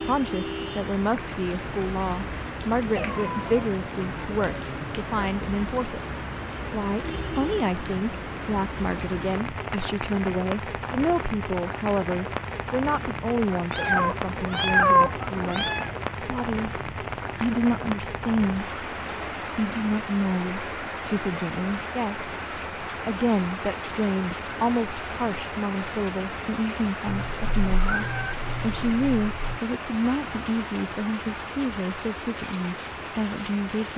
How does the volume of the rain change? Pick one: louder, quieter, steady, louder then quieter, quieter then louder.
steady.